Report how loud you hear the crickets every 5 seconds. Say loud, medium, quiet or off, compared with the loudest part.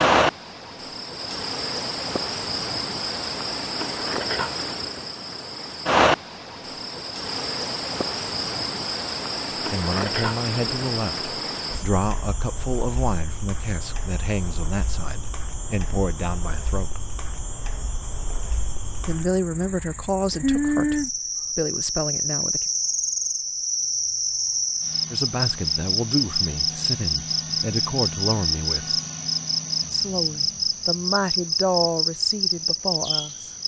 loud, loud, medium, quiet, loud, loud, loud.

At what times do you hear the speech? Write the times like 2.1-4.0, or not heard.
9.7-17.1, 19.1-22.6, 25.1-29.0, 29.9-33.5.